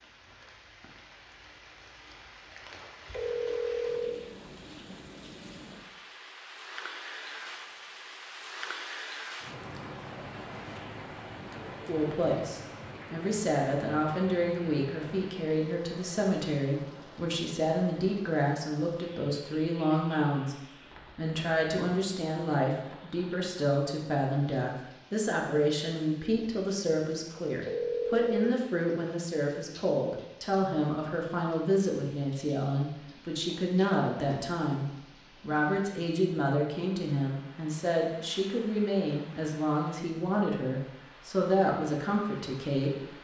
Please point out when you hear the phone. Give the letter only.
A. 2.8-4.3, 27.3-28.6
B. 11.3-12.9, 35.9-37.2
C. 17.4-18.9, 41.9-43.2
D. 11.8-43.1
A.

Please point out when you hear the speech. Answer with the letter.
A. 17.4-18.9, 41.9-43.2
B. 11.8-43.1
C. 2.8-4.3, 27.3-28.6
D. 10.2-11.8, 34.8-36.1
B.